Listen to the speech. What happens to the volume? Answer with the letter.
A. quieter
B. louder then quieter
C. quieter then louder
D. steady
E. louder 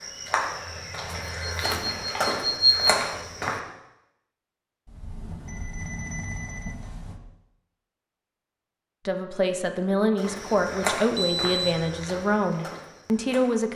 D.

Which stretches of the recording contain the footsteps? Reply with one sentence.
You can hear the footsteps from 0.0 to 3.6 s and from 10.2 to 13.7 s.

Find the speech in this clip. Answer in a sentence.
The speech can be heard from 9.1 to 13.7 s.